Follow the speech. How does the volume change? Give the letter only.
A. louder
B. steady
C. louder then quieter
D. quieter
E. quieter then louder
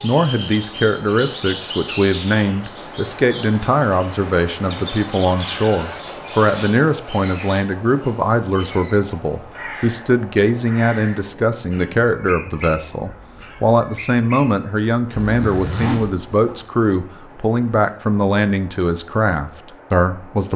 B.